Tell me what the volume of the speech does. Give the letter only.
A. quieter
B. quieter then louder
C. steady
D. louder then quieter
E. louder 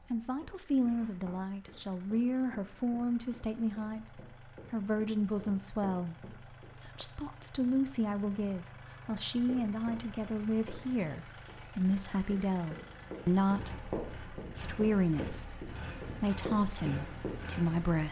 C.